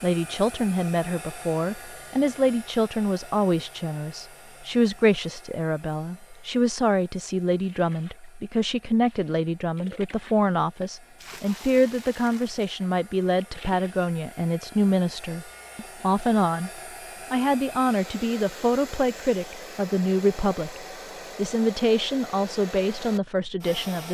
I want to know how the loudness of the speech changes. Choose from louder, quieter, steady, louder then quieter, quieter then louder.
steady.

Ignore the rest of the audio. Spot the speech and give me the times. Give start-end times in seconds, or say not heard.
0.0-16.7, 17.3-24.0.